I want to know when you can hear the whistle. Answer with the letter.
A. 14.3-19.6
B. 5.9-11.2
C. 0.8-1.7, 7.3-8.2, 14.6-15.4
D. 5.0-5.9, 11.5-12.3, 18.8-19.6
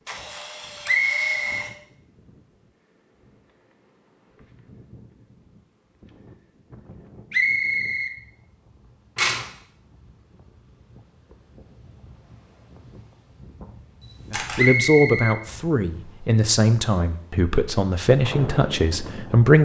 C.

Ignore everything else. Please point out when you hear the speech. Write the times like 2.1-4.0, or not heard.
14.3-19.6.